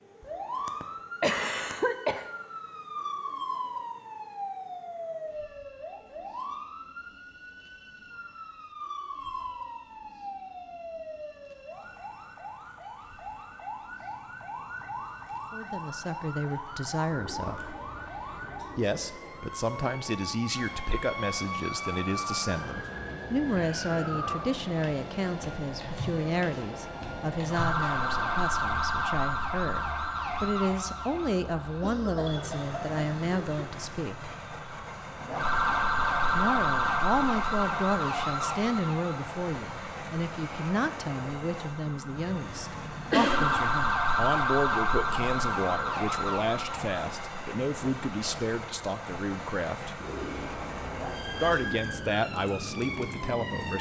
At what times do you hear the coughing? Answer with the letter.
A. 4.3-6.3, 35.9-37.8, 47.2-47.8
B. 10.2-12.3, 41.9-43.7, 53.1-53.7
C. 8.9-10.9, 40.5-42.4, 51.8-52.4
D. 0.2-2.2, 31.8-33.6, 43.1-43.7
D.